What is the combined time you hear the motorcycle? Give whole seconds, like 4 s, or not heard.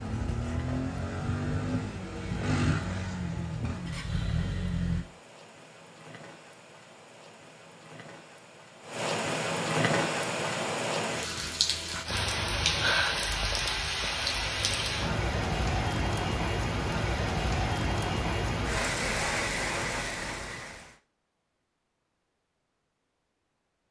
5 s.